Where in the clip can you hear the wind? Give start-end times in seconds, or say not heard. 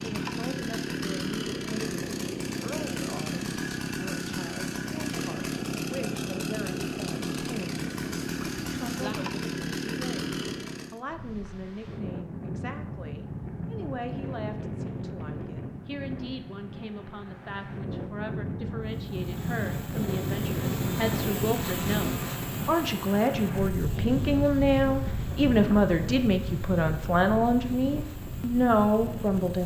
11.1-29.6.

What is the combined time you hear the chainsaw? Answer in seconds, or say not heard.
22 s.